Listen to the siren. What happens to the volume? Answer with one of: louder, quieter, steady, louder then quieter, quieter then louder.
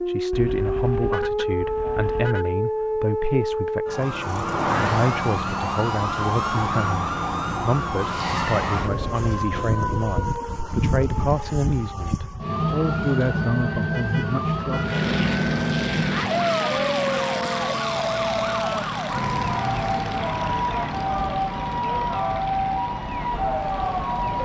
steady.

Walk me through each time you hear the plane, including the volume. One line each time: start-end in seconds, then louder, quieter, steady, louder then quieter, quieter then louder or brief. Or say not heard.
14.8-24.3 quieter.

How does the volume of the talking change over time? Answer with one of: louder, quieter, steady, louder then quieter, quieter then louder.
steady.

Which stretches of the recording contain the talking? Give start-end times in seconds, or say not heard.
0.1-14.9.